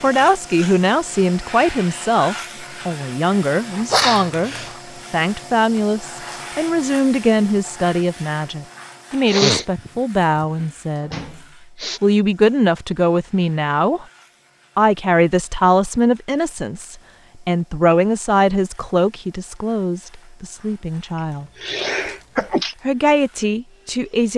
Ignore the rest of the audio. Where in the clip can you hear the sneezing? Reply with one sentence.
The sneezing can be heard from 3.9 to 4.8 s, from 9.2 to 12.0 s and from 21.1 to 22.8 s.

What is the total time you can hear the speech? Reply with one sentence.
You can hear the speech for 22 seconds altogether.